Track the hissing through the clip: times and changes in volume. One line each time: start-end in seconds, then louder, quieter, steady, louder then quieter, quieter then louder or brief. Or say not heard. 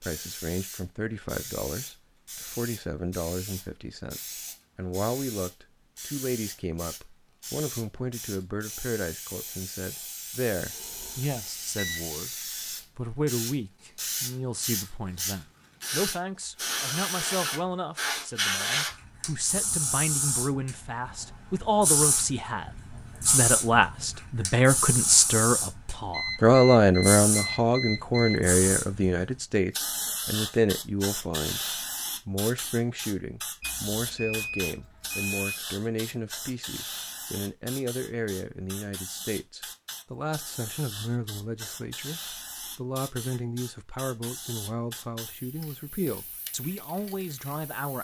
0.0-48.0 louder then quieter.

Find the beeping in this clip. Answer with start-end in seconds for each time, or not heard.
10.7-12.1, 26.1-28.4, 33.6-35.5.